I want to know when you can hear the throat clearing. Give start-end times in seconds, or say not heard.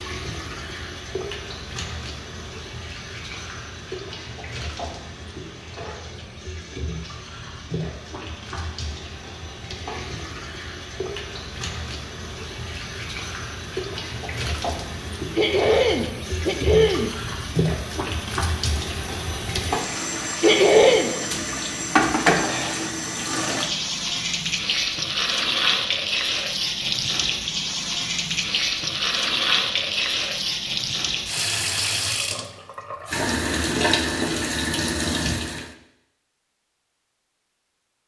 15.3-17.1, 20.4-21.1.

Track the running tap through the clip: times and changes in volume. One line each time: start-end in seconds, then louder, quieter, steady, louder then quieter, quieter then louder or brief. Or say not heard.
0.0-35.8 louder.